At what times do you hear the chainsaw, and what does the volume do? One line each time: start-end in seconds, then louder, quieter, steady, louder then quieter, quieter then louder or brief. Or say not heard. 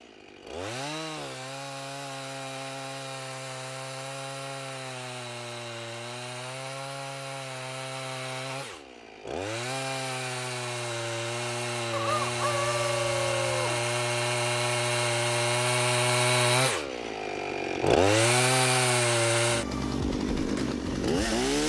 0.0-21.6 louder.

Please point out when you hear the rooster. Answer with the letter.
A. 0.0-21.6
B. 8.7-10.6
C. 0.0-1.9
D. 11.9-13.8
D.